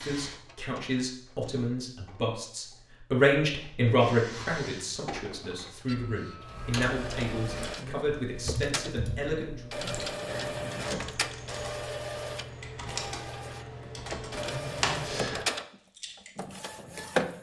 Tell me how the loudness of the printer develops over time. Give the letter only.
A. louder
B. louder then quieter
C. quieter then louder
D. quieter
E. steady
A.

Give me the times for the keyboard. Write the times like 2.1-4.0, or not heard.
6.4-16.4.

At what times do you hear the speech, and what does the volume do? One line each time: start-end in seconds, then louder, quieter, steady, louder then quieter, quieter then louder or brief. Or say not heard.
0.0-9.6 louder then quieter.